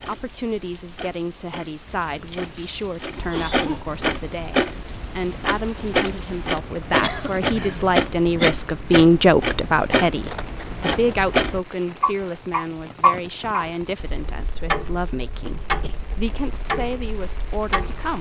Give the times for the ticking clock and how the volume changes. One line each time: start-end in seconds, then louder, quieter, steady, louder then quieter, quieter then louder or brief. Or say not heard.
0.0-18.1 louder then quieter.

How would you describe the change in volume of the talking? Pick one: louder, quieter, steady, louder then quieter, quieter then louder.
louder then quieter.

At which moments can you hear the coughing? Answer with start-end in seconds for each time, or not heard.
3.1-3.9, 6.5-8.5, 15.4-15.9.